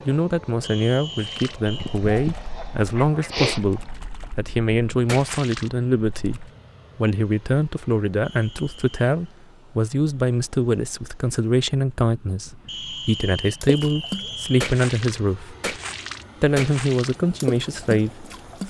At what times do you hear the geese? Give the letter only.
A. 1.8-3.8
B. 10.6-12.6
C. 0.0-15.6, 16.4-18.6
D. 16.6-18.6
A.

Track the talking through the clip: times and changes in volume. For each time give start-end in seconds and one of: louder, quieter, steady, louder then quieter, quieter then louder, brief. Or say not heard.
0.0-15.6 steady
16.4-18.6 brief.